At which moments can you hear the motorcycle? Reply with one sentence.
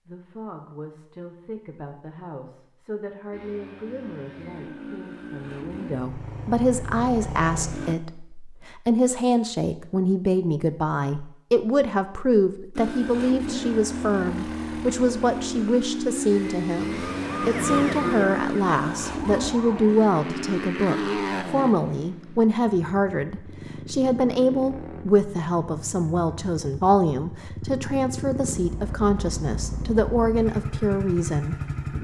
The motorcycle can be heard from 3.3 to 8.0 s and from 12.8 to 31.9 s.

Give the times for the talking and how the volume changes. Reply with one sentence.
The talking can be heard from 0.1 to 31.6 s, getting louder.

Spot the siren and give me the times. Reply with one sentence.
You can hear the siren from 16.8 to 20.0 s.